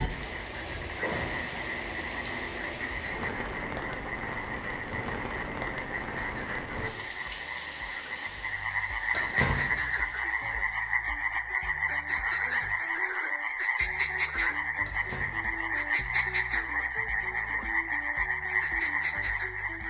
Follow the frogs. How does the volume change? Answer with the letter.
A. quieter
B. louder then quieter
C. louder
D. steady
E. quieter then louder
C.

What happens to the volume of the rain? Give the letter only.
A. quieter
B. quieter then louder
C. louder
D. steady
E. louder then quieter
A.